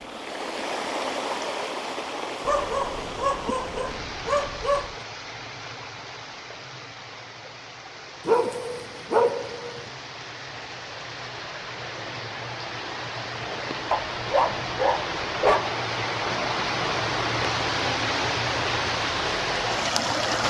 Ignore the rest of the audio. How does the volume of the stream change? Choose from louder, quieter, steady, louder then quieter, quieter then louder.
quieter then louder.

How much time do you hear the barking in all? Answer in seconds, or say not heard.
6 s.